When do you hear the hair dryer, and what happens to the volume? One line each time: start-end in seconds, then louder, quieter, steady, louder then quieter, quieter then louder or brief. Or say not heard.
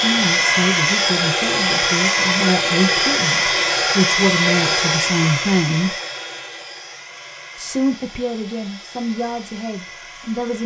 0.0-10.6 quieter.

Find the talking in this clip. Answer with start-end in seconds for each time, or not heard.
0.0-6.0, 7.5-10.6.